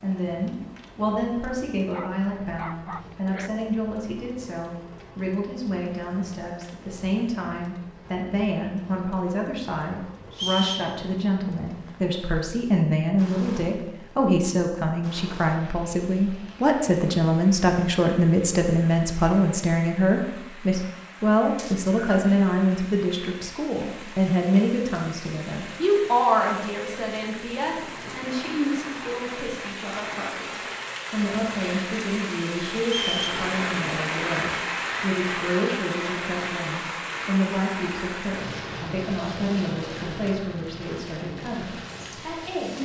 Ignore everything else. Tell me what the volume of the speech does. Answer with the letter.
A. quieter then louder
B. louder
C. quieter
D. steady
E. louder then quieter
E.